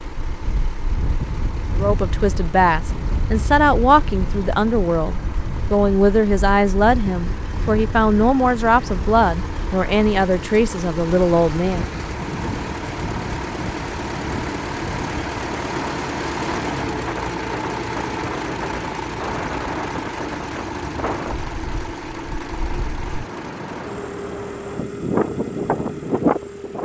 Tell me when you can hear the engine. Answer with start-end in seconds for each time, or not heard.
0.0-26.7.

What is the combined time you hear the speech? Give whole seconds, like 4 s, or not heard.
10 s.